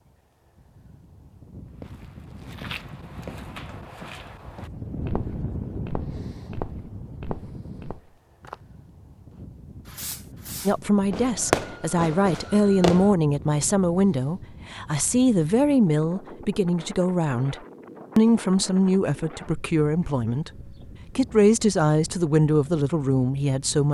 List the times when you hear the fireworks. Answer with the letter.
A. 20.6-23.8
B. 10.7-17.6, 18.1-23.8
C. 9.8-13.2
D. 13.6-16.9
C.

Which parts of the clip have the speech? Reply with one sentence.
You can hear the speech from 10.7 to 17.6 s and from 18.1 to 23.8 s.